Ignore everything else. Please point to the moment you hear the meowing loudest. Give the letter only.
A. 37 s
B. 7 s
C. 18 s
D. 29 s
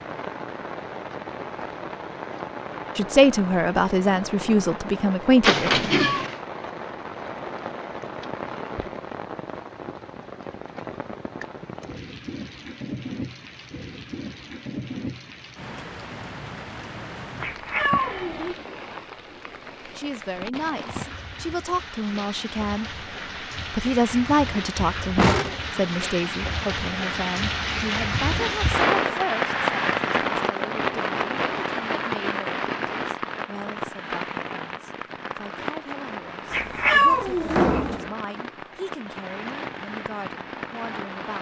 A.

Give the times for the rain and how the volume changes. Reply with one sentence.
You can hear the rain from 0.0 to 41.3 s, getting louder then quieter.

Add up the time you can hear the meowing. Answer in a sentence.
You can hear the meowing for 3 seconds altogether.